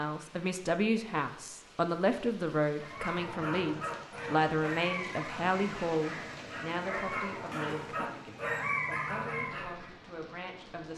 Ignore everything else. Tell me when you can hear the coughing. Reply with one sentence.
You can hear the coughing from 7.5 to 8.3 s.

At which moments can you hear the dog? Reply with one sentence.
The dog can be heard from 2.8 to 9.9 s.